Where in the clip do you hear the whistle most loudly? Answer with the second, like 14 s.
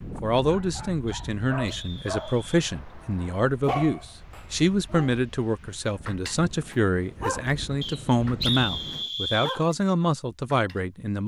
9 s.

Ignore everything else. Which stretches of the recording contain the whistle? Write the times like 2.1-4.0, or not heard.
1.1-2.6, 7.8-9.6.